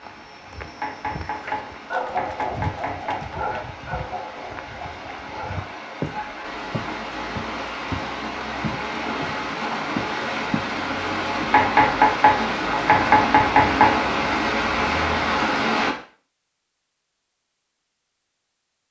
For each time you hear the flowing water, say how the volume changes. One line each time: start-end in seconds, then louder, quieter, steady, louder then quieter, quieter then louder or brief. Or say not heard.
0.0-15.9 louder.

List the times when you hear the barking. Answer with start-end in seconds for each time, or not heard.
1.2-6.5.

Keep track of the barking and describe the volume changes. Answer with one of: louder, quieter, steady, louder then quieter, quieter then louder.
quieter.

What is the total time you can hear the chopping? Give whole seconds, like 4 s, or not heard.
5 s.